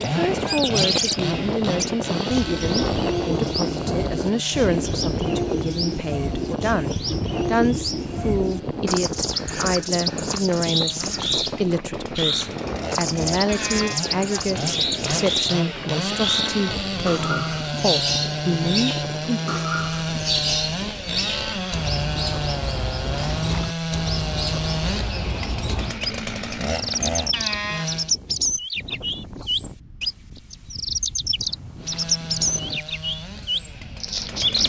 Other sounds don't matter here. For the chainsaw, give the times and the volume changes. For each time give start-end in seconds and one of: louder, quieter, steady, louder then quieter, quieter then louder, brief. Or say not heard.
0.0-28.1 quieter then louder
31.8-34.6 brief.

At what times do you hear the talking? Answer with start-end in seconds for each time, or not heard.
0.0-19.4.